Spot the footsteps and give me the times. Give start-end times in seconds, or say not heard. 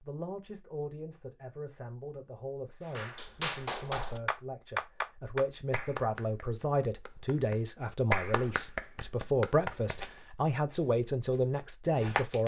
10.0-12.4.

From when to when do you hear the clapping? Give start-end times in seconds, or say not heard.
3.0-9.9.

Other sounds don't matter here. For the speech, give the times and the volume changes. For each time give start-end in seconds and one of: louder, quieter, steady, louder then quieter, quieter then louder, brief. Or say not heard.
0.0-12.4 louder.